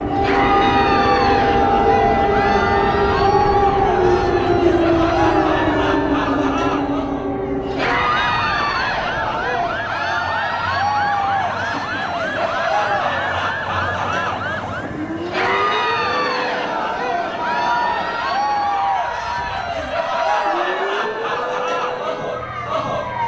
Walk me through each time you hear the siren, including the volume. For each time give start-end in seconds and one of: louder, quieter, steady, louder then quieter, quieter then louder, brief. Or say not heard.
0.0-23.2 quieter.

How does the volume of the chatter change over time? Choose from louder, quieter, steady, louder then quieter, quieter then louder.
steady.